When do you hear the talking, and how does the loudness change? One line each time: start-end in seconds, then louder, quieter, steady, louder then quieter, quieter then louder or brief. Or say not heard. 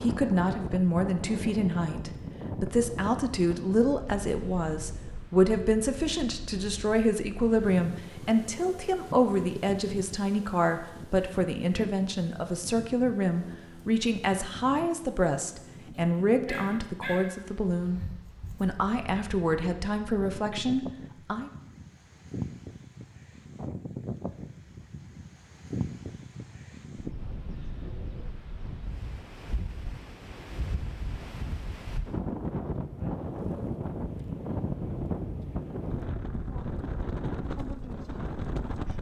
0.0-18.0 steady
18.6-21.5 brief.